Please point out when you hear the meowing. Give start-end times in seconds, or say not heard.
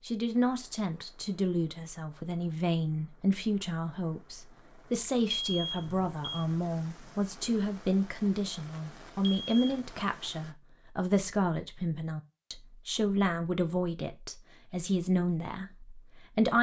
not heard.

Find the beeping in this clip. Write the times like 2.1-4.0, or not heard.
5.3-6.5, 9.2-9.8.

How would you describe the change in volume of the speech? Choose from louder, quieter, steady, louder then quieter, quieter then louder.
steady.